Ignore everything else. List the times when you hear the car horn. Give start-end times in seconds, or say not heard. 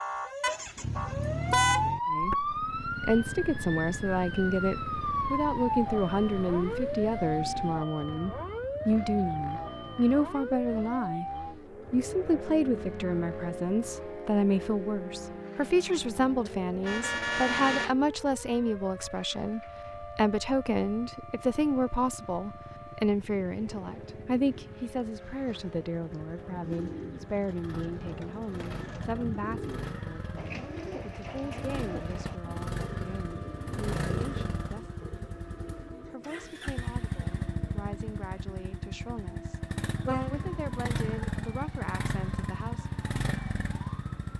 0.4-1.9, 16.8-17.9, 40.0-41.2.